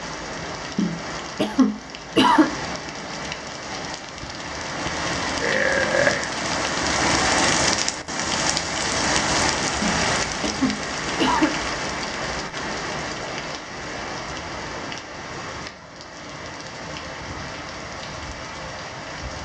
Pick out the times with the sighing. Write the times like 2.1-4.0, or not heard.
0.8-2.5, 9.8-11.6.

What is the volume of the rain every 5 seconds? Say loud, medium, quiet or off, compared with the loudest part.
medium, loud, medium, quiet.